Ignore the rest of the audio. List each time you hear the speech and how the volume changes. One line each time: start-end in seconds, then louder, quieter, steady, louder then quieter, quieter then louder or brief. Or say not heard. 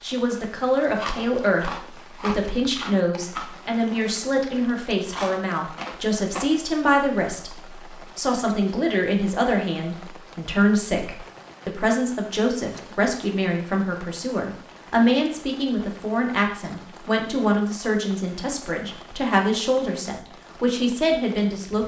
0.0-21.8 steady.